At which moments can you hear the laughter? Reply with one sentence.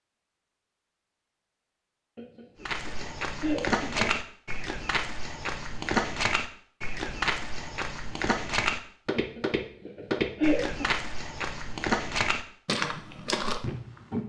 The laughter can be heard from 2.1 to 4.2 s and from 9.2 to 10.9 s.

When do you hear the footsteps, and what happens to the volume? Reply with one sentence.
The footsteps can be heard from 2.6 to 14.2 s, at a steady volume.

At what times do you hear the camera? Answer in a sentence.
You can't hear the camera here.